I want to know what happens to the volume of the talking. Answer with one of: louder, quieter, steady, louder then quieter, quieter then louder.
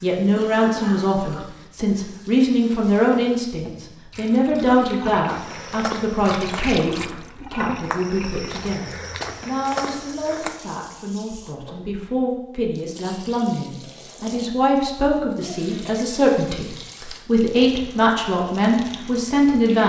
quieter then louder.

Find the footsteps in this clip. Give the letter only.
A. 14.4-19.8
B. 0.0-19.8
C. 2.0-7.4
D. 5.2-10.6
D.